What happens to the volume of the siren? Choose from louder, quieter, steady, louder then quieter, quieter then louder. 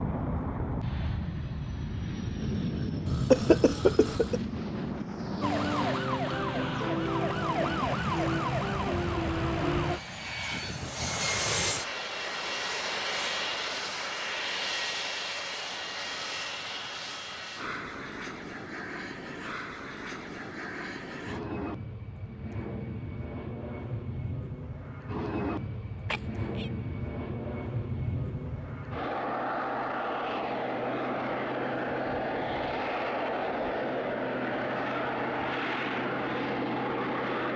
steady.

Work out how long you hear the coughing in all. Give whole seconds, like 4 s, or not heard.
2 s.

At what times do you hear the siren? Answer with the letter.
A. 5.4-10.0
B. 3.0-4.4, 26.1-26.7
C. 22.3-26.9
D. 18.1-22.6
A.